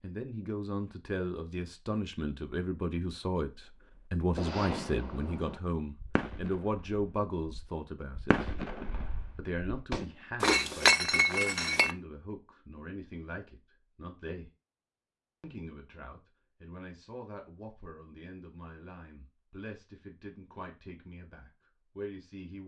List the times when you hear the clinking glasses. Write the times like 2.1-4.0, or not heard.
10.4-11.9.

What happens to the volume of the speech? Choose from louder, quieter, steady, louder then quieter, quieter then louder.
quieter.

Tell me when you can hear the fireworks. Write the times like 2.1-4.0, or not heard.
4.3-10.2.